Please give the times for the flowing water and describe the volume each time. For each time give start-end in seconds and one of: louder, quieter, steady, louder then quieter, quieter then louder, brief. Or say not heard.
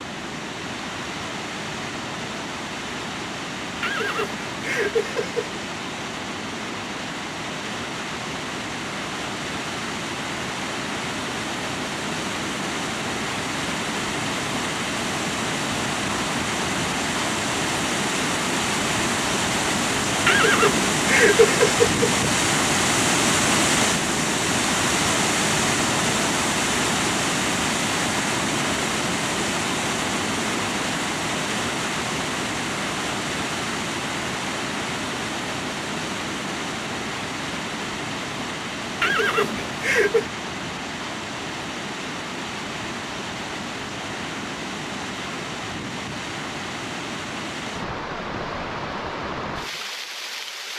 0.0-50.7 louder then quieter.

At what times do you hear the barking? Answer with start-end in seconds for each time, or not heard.
not heard.